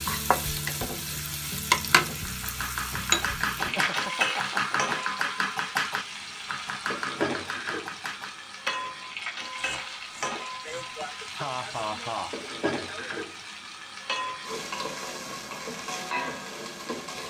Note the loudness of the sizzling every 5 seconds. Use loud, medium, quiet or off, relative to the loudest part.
loud, medium, medium, medium.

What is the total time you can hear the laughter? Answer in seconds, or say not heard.
4 s.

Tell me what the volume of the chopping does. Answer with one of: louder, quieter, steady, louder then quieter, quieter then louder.
quieter.